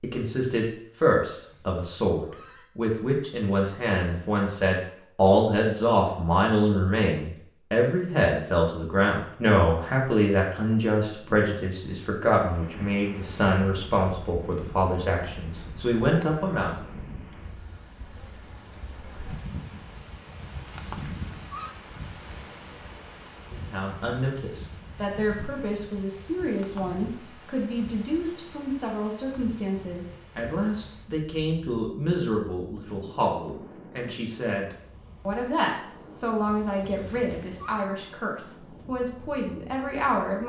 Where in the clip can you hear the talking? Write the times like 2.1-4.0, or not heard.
0.0-16.8, 23.5-40.4.